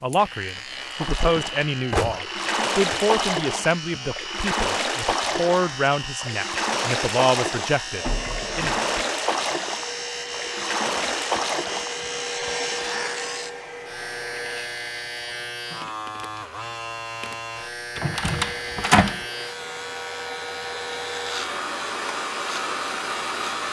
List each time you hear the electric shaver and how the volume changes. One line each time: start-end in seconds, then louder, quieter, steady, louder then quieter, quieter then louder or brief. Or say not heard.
0.0-23.6 steady.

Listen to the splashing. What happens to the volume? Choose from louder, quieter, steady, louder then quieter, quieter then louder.
steady.